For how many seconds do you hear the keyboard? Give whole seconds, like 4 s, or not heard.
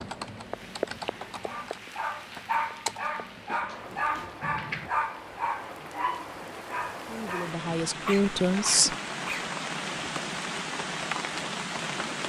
5 s.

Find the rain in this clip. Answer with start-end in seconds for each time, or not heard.
0.0-12.2.